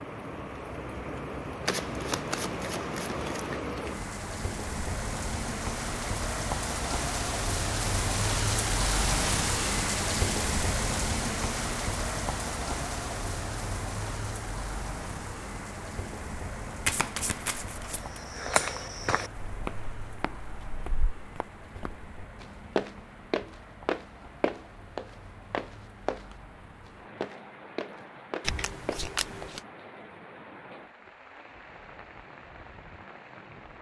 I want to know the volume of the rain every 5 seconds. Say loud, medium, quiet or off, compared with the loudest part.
medium, loud, loud, medium, quiet, quiet, quiet.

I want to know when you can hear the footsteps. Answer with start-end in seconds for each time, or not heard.
17.9-29.6.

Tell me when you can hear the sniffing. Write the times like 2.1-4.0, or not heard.
not heard.